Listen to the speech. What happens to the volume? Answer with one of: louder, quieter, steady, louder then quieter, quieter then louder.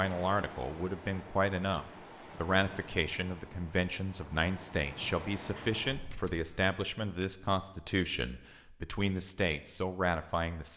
steady.